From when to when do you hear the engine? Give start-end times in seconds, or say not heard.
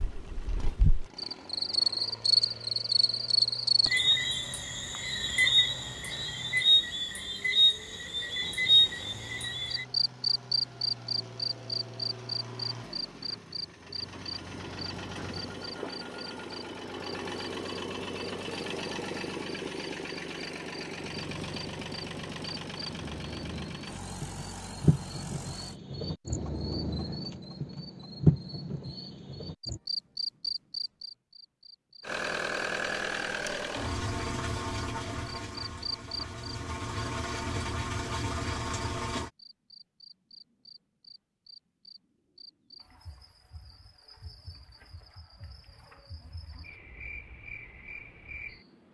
0.0-25.8, 32.0-39.3.